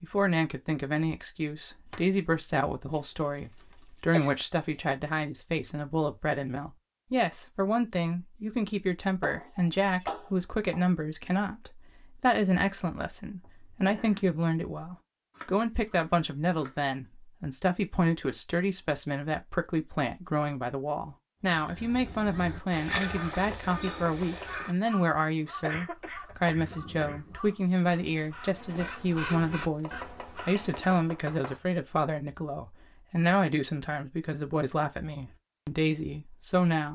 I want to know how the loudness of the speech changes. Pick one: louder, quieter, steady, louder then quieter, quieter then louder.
steady.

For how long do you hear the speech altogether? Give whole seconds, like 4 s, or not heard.
37 s.